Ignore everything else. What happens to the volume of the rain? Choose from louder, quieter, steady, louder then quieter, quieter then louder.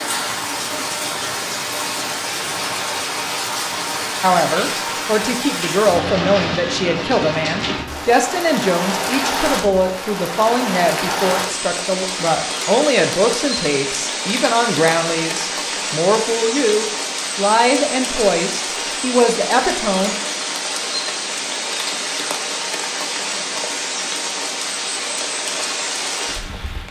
steady.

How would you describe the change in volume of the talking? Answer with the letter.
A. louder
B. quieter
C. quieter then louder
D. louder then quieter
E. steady
E.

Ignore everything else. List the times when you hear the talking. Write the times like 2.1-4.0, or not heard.
4.2-20.1.